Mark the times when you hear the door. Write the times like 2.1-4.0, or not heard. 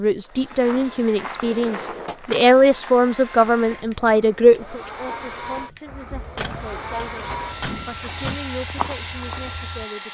1.4-2.2, 6.3-8.3.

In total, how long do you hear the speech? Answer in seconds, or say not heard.
10 s.